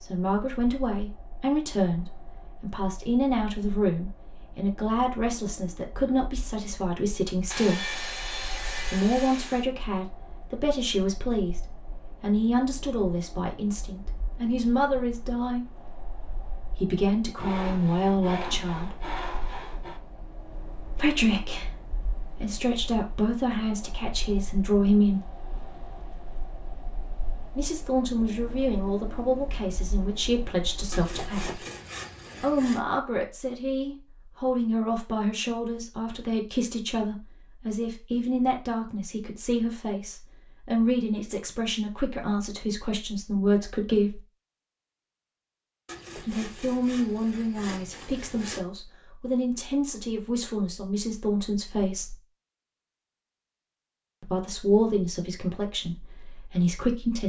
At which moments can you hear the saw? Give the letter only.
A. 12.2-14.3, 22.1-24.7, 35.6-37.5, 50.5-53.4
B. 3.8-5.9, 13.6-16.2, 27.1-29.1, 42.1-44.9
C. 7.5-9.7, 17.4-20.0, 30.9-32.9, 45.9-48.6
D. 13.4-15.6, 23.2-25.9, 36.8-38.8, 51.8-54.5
C.